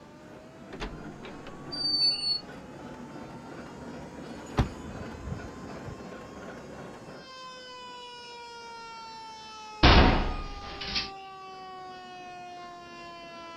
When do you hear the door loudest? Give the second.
10 s.